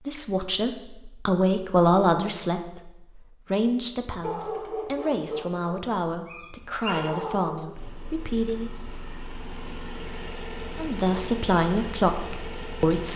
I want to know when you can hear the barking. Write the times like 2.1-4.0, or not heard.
4.2-7.6.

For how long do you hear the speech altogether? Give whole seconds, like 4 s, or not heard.
11 s.